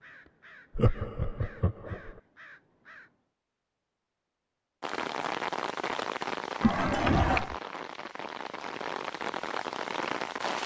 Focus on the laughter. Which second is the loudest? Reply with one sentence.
The loudest moment of the laughter is at 7 seconds.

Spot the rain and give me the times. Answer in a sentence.
You can hear the rain from 4.8 to 10.6 s.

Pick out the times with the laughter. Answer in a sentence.
You can hear the laughter from 0.8 to 2.1 s and from 6.6 to 7.5 s.